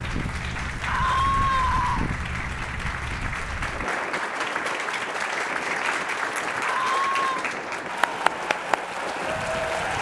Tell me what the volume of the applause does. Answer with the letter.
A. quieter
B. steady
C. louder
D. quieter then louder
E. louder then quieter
C.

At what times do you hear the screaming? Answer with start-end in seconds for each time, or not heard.
0.8-2.1, 6.6-7.5.